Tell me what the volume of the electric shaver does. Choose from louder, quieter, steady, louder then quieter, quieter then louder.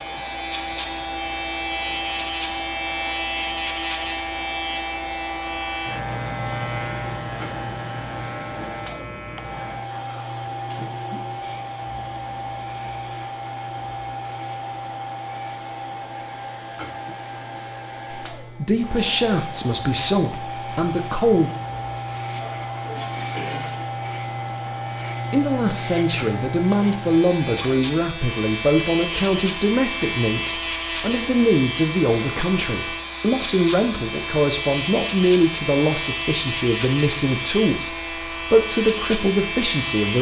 quieter then louder.